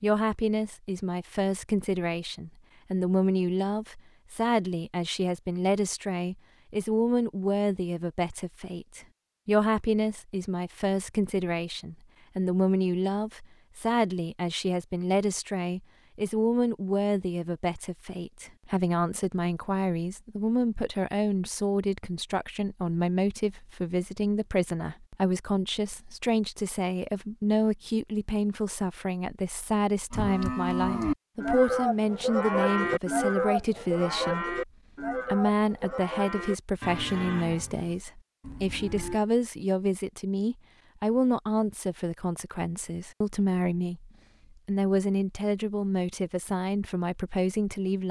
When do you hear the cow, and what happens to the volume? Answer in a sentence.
The cow can be heard from 30.1 to 39.2 s, getting quieter.